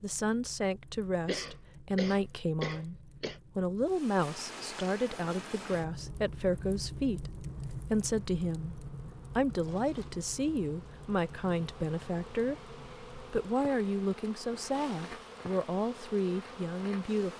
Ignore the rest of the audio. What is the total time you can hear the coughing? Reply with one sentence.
You can hear the coughing for 2 seconds altogether.